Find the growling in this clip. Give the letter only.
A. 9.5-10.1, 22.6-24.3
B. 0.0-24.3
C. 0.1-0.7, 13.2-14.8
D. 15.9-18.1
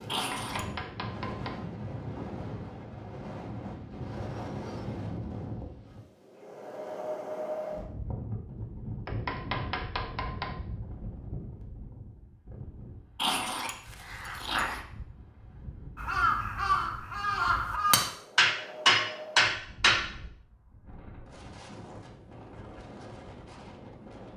C.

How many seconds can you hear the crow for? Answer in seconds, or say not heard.
2 s.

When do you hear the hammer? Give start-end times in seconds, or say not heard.
0.1-1.6, 9.1-10.6, 18.4-20.1.